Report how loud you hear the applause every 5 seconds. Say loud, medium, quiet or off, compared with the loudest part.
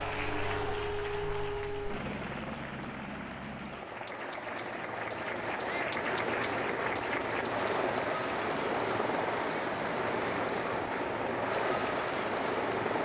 medium, loud, loud.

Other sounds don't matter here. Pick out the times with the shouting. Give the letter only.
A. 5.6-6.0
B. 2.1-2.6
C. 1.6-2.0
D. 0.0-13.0
A.